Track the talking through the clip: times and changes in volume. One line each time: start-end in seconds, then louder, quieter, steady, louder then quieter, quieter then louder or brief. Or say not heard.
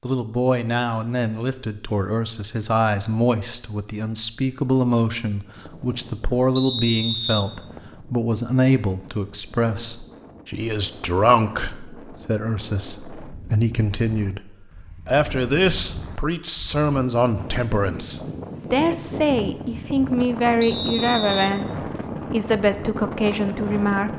0.0-24.1 steady.